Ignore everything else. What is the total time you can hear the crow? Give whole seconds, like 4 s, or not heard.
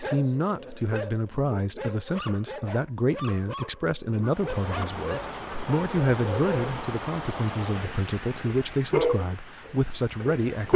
not heard.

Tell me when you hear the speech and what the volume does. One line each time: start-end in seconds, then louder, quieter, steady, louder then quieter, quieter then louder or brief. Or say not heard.
0.0-10.7 steady.